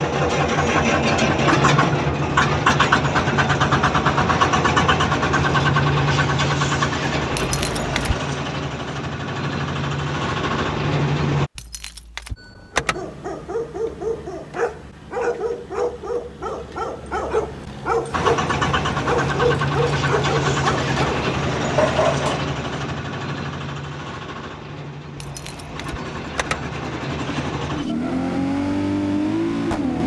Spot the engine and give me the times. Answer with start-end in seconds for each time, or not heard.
0.0-11.5, 18.1-30.0.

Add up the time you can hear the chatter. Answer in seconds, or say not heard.
not heard.